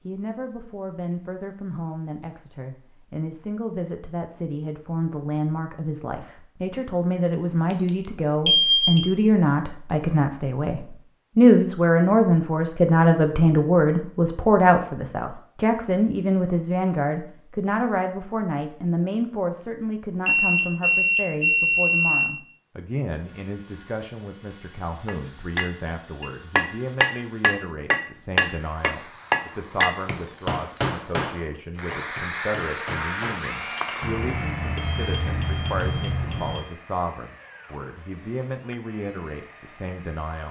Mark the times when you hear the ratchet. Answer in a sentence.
The ratchet can't be heard in this clip.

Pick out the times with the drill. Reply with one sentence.
The drill can be heard from 23.1 to 40.4 s.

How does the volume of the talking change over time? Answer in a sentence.
The loudness of the talking goes up, then down.